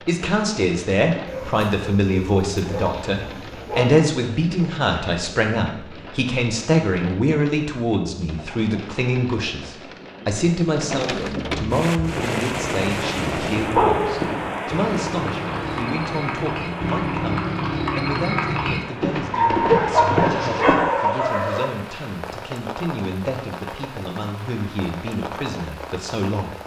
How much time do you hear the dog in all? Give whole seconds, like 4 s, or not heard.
6 s.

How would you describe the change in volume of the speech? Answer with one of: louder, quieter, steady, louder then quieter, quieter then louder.
quieter.